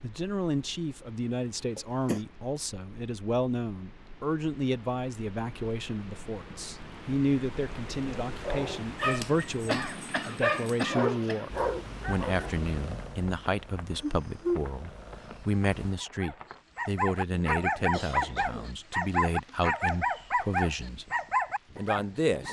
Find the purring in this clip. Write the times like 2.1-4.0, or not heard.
11.4-15.9.